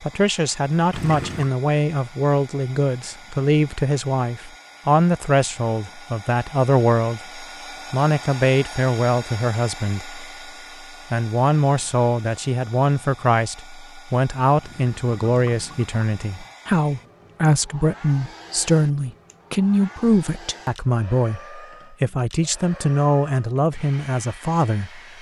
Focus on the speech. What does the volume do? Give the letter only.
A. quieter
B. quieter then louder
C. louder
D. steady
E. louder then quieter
D.